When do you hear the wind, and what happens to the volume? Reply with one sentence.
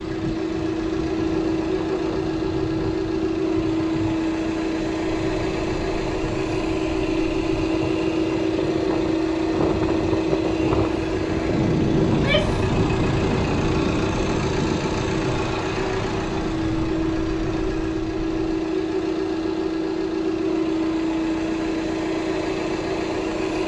The wind can be heard from 0.0 to 18.4 s, getting louder then quieter.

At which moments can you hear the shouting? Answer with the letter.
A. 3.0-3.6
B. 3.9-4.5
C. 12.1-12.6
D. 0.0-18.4
C.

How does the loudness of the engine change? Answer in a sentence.
The volume of the engine stays about the same.